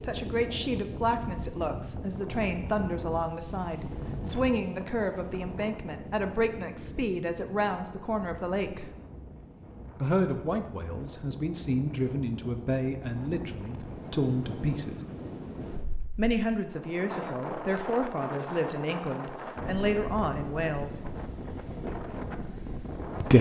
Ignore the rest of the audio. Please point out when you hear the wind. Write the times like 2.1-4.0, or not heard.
0.0-23.3.